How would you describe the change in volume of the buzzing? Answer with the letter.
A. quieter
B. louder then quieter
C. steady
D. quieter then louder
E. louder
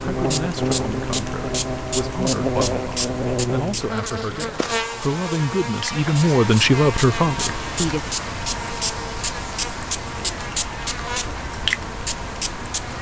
A.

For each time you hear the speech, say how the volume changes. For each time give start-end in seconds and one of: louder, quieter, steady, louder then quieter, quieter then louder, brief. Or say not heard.
0.0-8.1 louder.